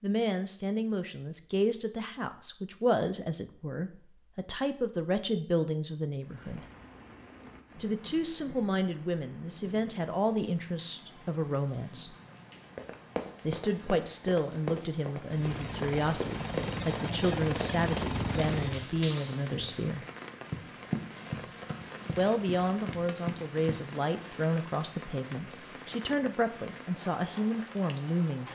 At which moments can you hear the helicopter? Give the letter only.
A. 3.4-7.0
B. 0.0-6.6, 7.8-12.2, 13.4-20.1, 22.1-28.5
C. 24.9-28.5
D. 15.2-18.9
D.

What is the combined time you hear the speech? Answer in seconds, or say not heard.
24 s.